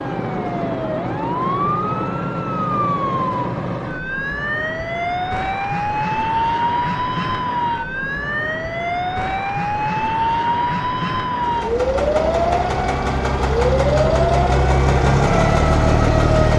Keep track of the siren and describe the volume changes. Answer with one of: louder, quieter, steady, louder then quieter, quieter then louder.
steady.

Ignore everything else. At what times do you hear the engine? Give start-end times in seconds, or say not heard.
11.4-16.5.